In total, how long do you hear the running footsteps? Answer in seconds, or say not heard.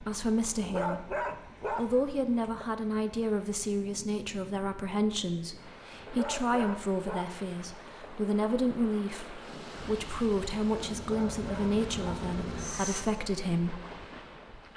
not heard.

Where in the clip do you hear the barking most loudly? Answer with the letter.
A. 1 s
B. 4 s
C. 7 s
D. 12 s
A.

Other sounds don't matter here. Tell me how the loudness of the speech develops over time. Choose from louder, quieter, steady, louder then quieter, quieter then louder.
steady.